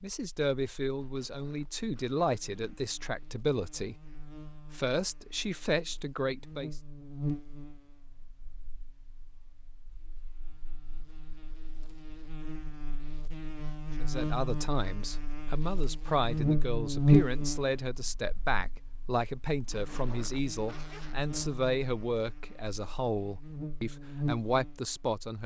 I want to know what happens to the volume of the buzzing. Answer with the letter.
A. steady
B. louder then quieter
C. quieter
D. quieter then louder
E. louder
B.